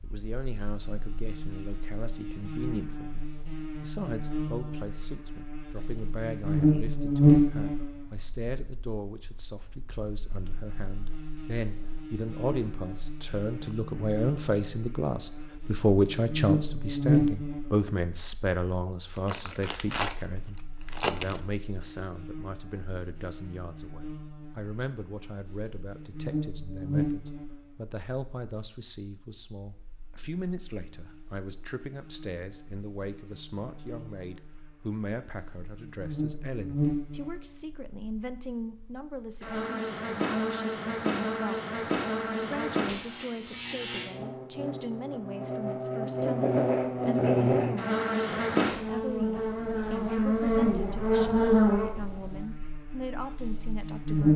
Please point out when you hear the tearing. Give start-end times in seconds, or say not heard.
19.1-20.1, 20.9-21.4.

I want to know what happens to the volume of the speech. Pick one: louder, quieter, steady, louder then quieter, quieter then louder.
louder then quieter.